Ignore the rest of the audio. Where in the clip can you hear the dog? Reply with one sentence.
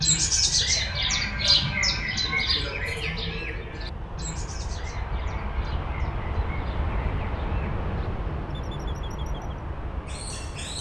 You can't hear the dog here.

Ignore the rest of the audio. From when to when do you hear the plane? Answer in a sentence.
The plane can be heard from 0.0 to 10.7 s.